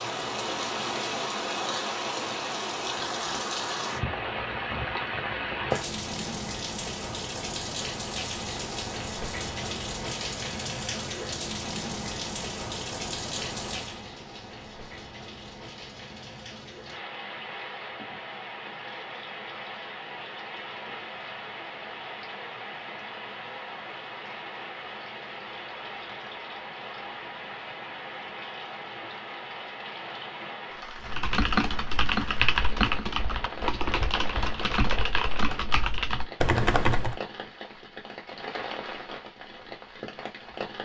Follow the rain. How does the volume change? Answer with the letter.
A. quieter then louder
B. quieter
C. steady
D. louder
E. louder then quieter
B.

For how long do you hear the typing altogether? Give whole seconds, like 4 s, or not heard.
6 s.